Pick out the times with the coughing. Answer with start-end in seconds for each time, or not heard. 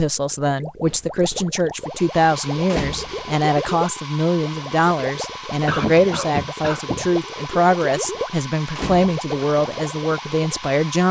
0.8-1.5, 5.7-7.1.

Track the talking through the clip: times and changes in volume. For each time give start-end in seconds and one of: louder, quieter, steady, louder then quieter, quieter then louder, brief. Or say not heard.
0.0-11.0 steady.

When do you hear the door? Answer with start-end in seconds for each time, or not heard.
2.6-3.3, 8.7-9.2.